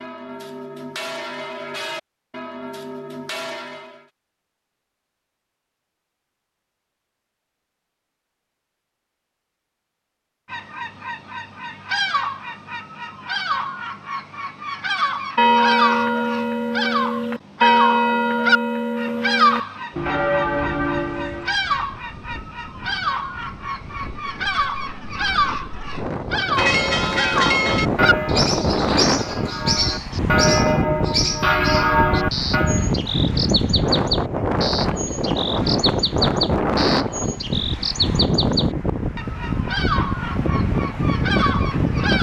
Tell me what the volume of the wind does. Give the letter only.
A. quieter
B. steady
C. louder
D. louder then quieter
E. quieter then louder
C.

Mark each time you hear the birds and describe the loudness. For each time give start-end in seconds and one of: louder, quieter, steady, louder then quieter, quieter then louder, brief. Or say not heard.
10.5-42.1 steady.